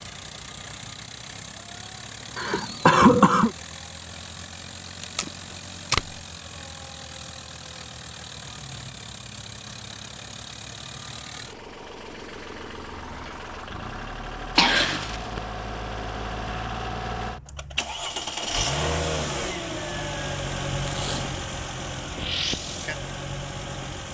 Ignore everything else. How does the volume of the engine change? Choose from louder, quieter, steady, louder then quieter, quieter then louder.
louder.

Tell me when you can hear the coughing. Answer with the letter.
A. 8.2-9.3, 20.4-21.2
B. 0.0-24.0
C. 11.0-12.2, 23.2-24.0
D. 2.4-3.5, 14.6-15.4
D.